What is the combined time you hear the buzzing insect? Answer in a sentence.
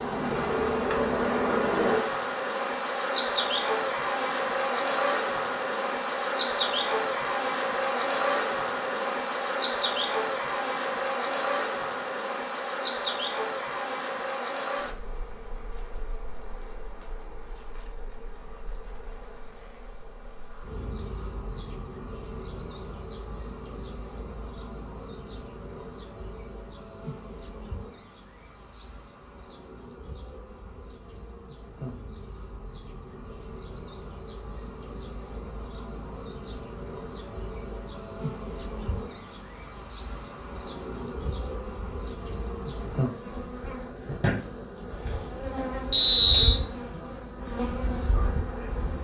The buzzing insect can be heard for 49 seconds in total.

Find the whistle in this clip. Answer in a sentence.
You can hear the whistle from 45.9 to 46.6 s.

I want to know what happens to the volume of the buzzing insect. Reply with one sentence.
The loudness of the buzzing insect goes down, then up.